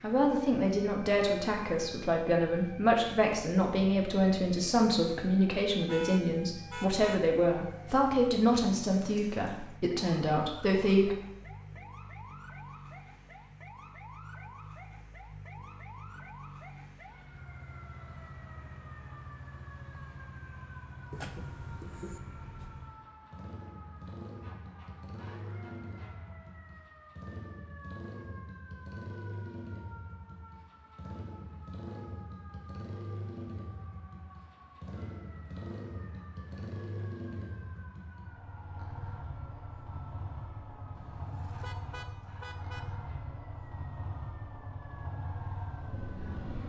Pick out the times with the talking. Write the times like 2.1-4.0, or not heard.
0.0-11.2.